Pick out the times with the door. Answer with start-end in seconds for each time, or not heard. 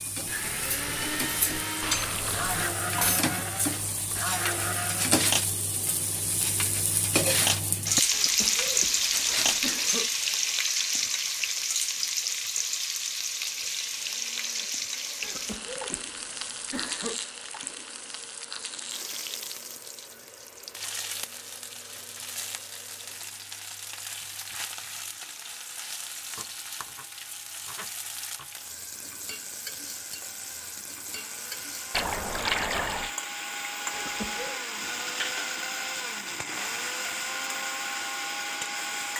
not heard.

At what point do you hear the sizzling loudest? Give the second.
8 s.